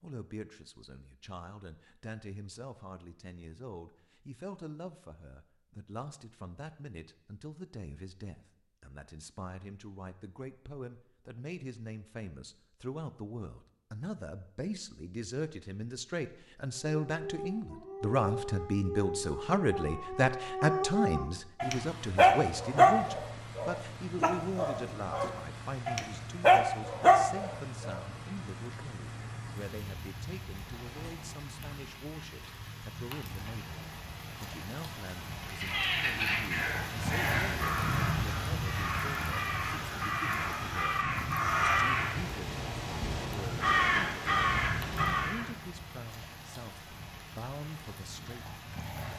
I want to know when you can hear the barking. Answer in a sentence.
You can hear the barking from 16.9 to 28.0 s.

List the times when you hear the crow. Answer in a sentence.
You can hear the crow from 35.5 to 45.5 s.